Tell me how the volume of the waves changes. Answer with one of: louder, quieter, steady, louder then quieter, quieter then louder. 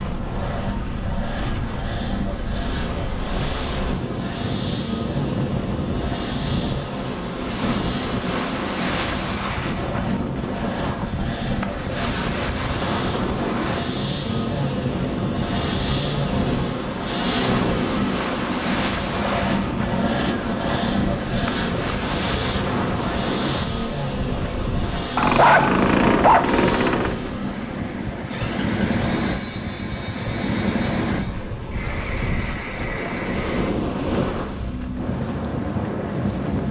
steady.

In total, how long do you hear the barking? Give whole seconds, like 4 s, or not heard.
2 s.